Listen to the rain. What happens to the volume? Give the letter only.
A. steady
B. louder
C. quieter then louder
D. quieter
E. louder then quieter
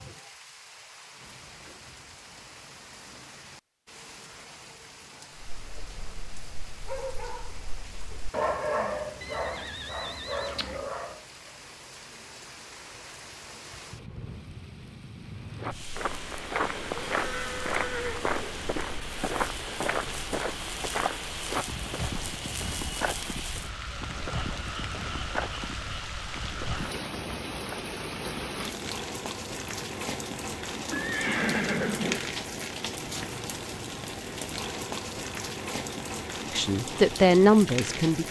B.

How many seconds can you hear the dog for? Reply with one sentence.
You can hear the dog for 6 seconds altogether.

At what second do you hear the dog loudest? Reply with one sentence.
The volume of the dog peaks at 9 seconds.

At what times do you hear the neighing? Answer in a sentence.
You can hear the neighing from 9.2 to 10.9 s, from 17.1 to 18.2 s and from 30.9 to 32.2 s.